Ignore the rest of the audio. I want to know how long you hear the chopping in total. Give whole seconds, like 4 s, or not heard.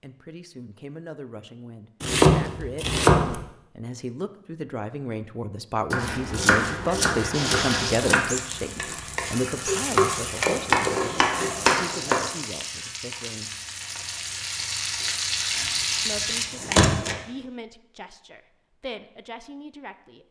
7 s.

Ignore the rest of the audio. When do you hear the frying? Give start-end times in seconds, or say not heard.
7.3-16.4.